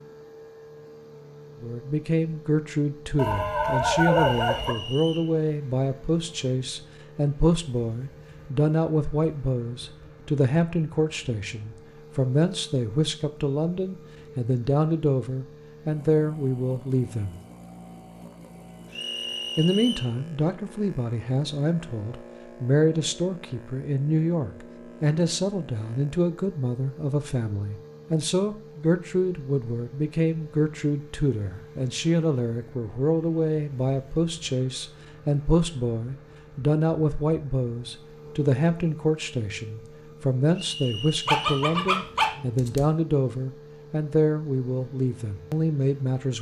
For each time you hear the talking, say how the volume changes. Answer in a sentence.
You can hear the talking from 1.6 to 17.4 s, at a steady volume; and from 19.6 to 46.3 s, at a steady volume.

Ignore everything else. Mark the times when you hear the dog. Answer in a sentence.
The dog can be heard from 3.1 to 4.8 s and from 41.2 to 42.9 s.